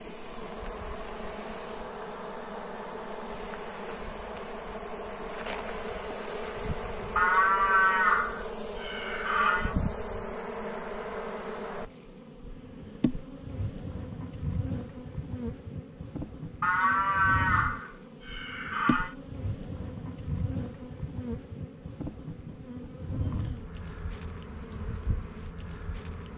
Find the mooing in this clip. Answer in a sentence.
You can hear the mooing from 7.2 to 9.8 s and from 16.6 to 19.1 s.